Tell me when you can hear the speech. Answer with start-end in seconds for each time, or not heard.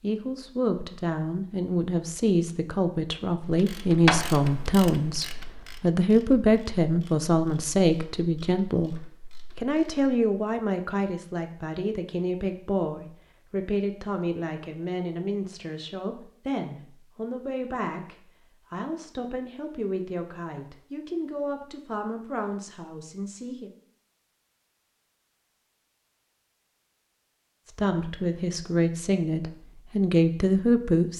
0.0-23.7, 27.6-31.1.